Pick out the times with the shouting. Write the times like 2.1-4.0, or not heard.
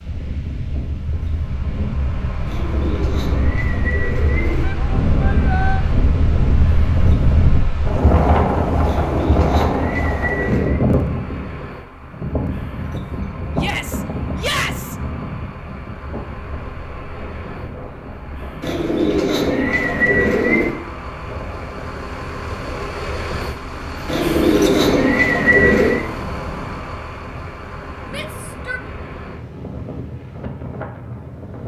4.6-5.8, 13.6-14.9, 28.1-28.9.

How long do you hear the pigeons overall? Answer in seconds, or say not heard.
8 s.